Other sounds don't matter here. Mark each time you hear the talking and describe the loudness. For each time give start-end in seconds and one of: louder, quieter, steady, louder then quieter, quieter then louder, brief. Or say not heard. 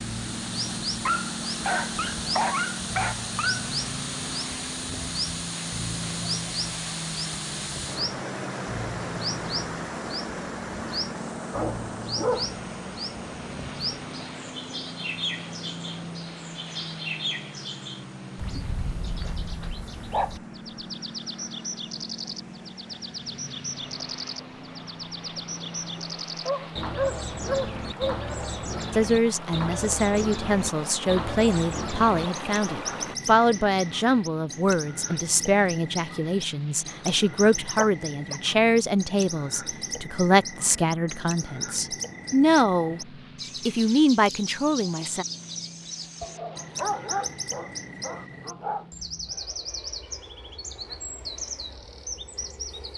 28.9-43.0 steady
43.6-45.2 brief.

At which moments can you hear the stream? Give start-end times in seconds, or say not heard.
0.0-33.1.